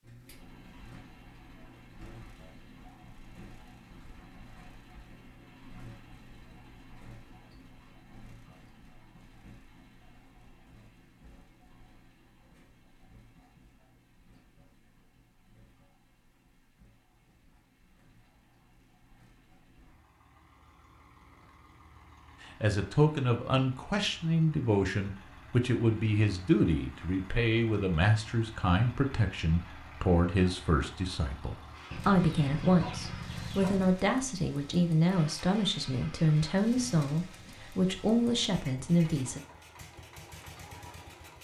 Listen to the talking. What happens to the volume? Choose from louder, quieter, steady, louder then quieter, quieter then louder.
steady.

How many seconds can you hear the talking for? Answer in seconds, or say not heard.
17 s.